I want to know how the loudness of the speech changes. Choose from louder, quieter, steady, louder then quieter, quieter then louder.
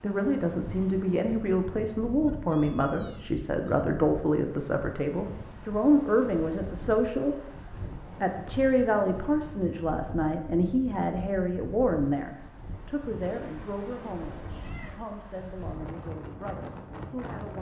quieter.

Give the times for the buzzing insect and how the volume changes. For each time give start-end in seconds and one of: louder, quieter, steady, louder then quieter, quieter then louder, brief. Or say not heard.
not heard.